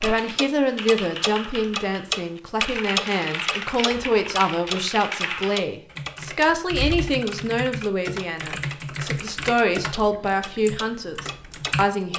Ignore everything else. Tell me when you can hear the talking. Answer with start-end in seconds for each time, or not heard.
0.0-12.1.